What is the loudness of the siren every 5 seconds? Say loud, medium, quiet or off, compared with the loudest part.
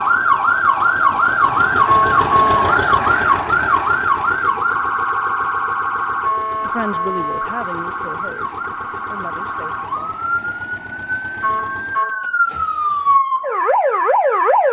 loud, medium, loud.